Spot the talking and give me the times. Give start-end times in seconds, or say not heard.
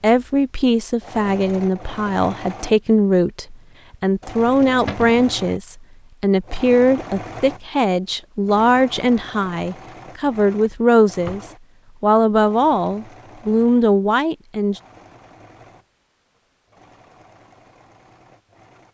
0.0-11.4, 12.0-14.8.